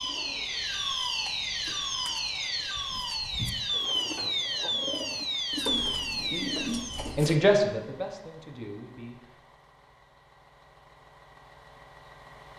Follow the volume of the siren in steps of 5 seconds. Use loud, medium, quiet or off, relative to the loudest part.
loud, loud, off.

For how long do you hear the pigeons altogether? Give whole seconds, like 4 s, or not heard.
7 s.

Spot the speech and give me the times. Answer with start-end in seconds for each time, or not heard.
6.2-9.2.